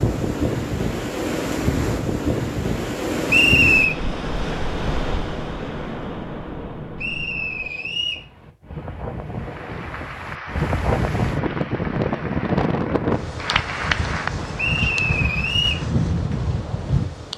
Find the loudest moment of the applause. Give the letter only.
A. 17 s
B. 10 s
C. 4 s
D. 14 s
D.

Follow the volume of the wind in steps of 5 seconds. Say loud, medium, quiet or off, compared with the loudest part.
loud, medium, loud, loud.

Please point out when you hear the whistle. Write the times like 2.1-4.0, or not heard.
3.2-4.0, 7.0-8.2, 14.6-15.8.